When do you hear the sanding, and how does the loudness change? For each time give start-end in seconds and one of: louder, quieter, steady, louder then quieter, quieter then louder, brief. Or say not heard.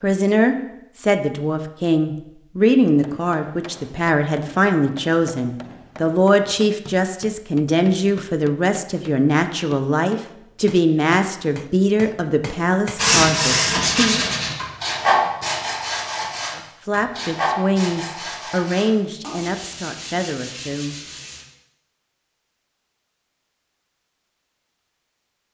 12.9-21.4 quieter.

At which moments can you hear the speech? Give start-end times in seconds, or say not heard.
0.0-14.2, 16.6-20.9.